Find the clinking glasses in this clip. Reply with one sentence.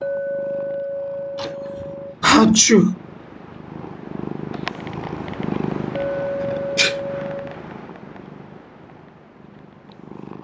You can hear the clinking glasses from 0.0 to 2.1 s and from 5.9 to 7.5 s.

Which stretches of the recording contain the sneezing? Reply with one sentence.
You can hear the sneezing from 1.4 to 3.0 s and from 6.4 to 7.0 s.